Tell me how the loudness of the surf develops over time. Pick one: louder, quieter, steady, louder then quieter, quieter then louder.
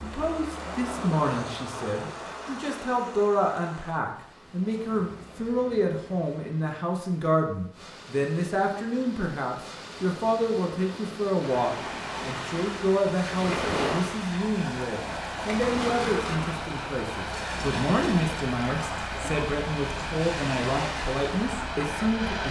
quieter then louder.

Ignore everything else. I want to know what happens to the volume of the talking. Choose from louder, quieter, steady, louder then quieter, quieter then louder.
steady.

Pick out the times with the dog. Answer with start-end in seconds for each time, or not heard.
not heard.